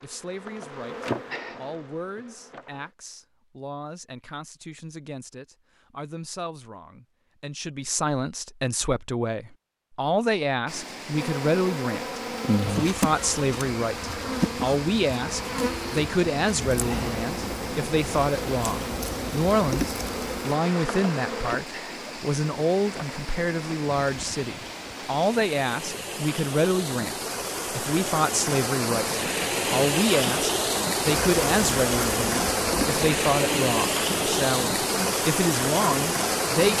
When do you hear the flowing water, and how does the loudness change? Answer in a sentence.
The flowing water can be heard from 10.7 to 36.7 s, getting louder.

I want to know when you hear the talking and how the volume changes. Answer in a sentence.
You can hear the talking from 0.0 to 36.7 s, getting louder.